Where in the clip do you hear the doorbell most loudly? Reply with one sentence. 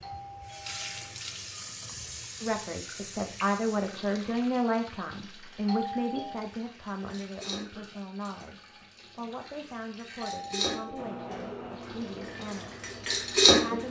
The volume of the doorbell peaks at 6 seconds.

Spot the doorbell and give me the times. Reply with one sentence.
The doorbell can be heard from 0.0 to 1.1 s, from 5.7 to 6.5 s and from 10.2 to 11.1 s.